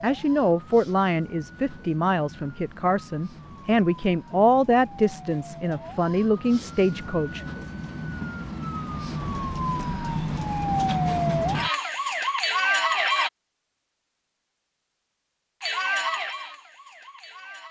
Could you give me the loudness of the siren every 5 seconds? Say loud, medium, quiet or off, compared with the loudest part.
quiet, medium, loud, medium.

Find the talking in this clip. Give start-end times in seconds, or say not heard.
0.0-7.4.